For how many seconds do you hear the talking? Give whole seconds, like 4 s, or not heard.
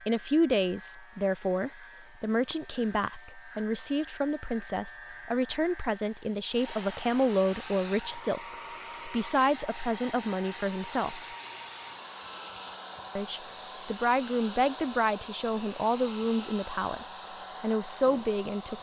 17 s.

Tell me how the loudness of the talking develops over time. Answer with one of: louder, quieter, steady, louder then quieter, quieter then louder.
steady.